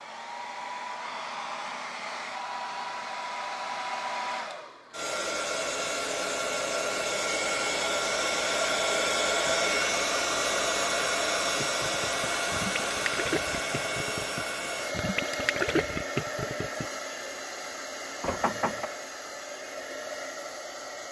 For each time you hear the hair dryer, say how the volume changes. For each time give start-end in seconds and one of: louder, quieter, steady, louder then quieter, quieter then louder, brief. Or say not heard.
0.0-21.0 louder then quieter.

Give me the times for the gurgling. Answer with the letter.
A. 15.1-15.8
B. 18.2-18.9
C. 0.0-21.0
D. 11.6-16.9
D.